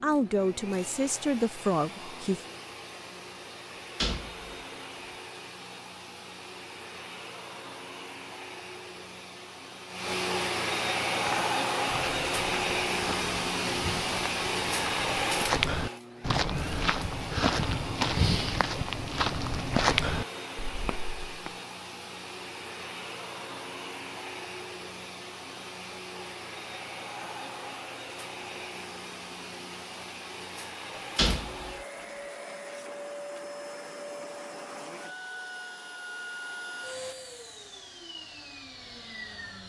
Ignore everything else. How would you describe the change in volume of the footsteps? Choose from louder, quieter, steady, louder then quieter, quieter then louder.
louder.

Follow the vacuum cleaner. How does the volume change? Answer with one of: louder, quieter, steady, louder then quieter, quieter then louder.
louder then quieter.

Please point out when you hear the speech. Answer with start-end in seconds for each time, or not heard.
0.0-2.4.